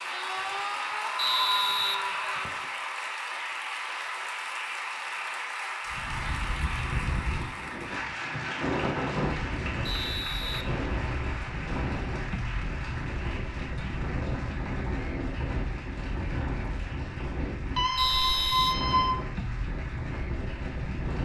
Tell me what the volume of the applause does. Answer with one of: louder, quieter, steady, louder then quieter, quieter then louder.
quieter.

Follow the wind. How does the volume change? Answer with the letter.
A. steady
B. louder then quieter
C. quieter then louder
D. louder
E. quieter
A.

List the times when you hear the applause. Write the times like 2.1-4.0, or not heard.
0.0-21.2.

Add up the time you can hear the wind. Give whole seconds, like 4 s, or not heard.
15 s.